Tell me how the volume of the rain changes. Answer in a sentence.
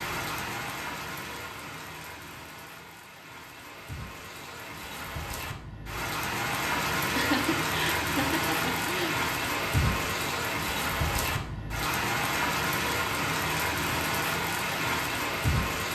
The loudness of the rain goes up.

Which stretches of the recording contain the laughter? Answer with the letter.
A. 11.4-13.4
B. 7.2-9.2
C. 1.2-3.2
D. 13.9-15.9
B.